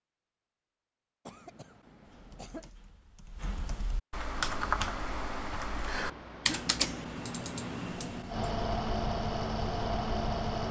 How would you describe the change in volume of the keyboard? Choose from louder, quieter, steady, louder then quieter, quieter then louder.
louder then quieter.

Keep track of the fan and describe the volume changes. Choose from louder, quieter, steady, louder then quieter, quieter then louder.
louder.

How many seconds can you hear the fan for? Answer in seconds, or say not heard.
6 s.